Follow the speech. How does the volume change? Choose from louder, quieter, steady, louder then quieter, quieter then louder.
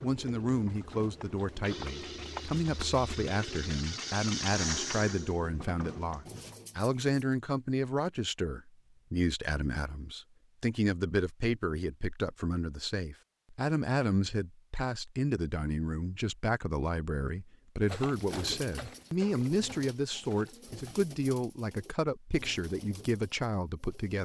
steady.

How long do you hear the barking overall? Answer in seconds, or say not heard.
not heard.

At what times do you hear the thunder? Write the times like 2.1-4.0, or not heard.
not heard.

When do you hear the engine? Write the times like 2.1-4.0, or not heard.
0.1-6.6.